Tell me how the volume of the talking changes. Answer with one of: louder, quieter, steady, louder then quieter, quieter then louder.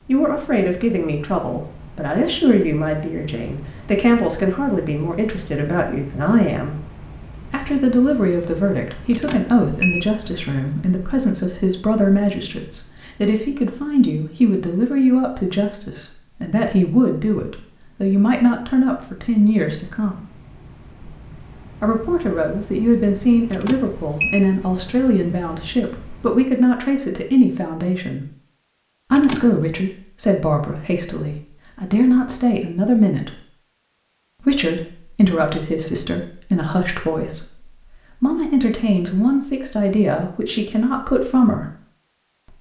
steady.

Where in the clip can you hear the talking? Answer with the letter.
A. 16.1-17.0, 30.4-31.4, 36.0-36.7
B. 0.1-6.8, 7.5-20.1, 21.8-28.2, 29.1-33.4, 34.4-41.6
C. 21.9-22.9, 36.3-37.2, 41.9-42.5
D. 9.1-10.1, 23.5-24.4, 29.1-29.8
B.